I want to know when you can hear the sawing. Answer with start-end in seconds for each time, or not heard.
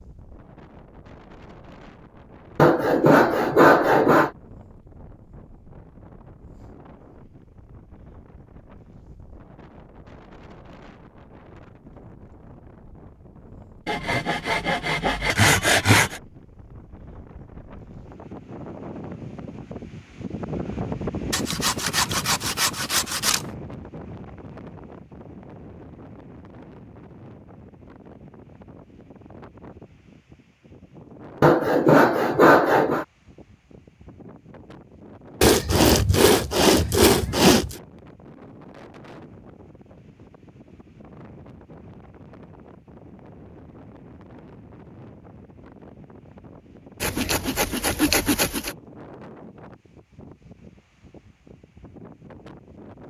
2.5-4.3, 13.8-16.2, 21.3-23.4, 31.4-33.0, 35.4-37.8, 47.0-48.8.